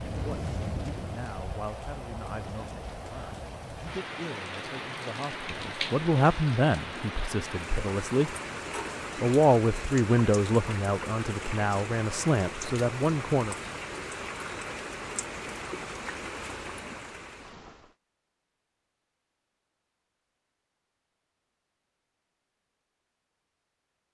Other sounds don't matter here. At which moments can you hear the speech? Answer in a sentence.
You can hear the speech from 0.1 to 8.3 s and from 9.2 to 13.6 s.